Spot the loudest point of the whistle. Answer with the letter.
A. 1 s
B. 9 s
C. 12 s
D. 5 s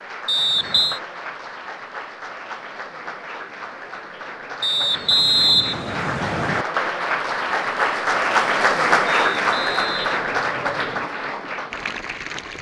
D.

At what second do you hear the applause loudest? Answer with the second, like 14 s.
9 s.